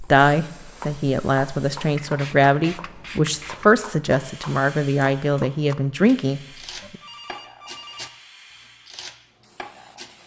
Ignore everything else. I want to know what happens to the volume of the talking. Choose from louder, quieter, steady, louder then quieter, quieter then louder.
steady.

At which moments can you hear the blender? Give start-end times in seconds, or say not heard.
not heard.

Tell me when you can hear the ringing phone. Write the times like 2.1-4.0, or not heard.
6.8-8.1.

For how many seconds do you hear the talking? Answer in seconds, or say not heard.
7 s.